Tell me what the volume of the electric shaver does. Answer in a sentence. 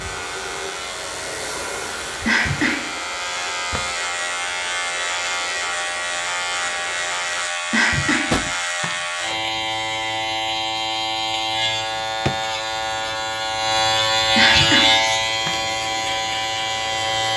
The loudness of the electric shaver goes up.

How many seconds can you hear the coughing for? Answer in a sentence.
You can hear the coughing for 3 seconds altogether.